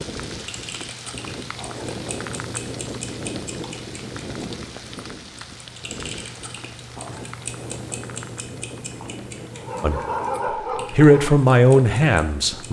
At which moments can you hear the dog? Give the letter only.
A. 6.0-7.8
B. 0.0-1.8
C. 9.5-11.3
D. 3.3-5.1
C.